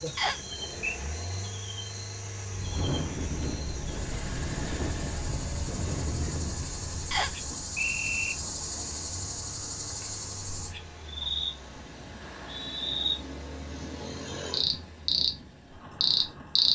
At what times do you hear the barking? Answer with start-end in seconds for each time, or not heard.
not heard.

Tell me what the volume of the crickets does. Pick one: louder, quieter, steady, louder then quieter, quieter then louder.
louder.